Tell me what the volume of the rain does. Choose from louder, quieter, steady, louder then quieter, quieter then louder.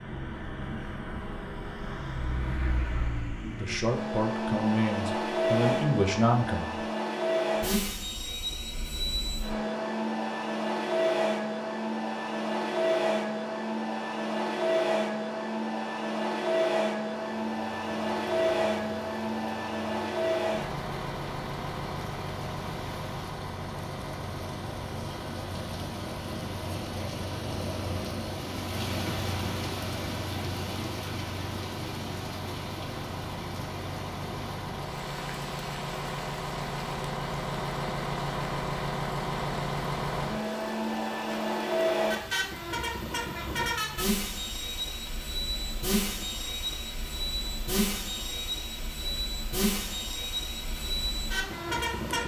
louder then quieter.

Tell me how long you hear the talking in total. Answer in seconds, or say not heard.
3 s.